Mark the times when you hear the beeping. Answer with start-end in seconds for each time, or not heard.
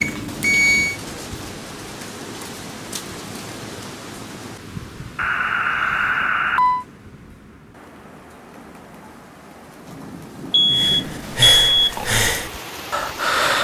0.0-0.9, 5.2-6.8, 10.5-12.1.